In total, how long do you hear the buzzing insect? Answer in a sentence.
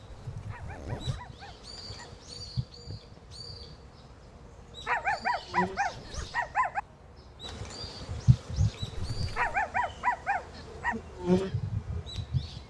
The buzzing insect can be heard for 11 seconds in total.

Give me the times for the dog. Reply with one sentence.
You can hear the dog from 0.5 to 2.1 s, from 4.8 to 6.8 s and from 9.3 to 10.9 s.